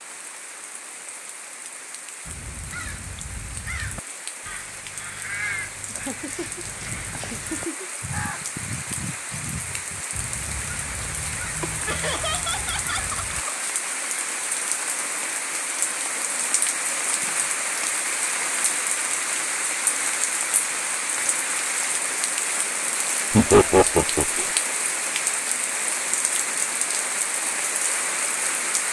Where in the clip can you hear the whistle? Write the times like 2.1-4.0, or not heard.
not heard.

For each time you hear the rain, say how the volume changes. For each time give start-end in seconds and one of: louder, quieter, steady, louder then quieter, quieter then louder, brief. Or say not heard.
0.0-28.8 louder.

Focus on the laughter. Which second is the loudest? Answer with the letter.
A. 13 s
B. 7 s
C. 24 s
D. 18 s
C.